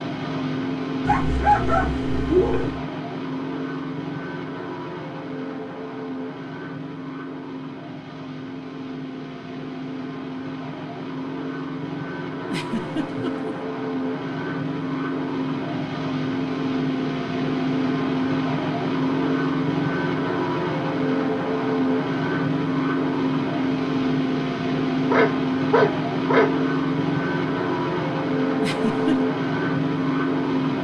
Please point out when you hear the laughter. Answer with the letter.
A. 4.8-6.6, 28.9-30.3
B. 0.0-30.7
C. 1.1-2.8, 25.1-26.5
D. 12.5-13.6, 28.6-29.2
D.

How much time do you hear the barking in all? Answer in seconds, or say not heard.
3 s.